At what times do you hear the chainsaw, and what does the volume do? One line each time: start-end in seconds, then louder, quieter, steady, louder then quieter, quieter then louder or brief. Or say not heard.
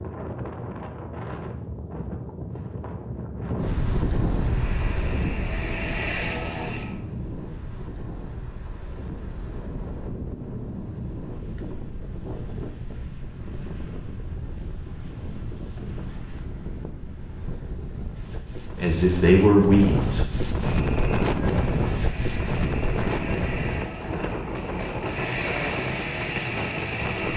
4.5-7.0 brief
20.7-27.3 louder.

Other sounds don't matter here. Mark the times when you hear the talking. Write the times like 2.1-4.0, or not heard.
18.7-20.2.